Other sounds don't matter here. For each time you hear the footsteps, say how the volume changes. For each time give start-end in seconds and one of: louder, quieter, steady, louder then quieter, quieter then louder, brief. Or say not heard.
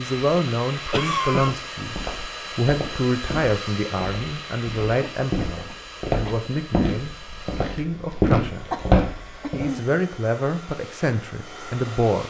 1.3-9.7 louder.